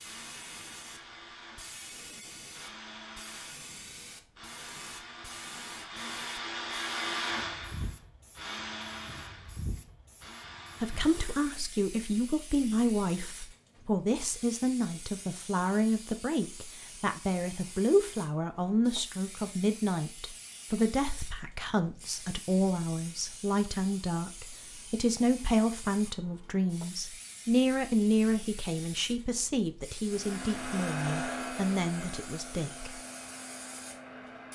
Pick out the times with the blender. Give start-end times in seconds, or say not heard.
0.0-11.6, 30.1-34.5.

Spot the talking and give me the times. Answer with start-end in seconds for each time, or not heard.
10.8-33.0.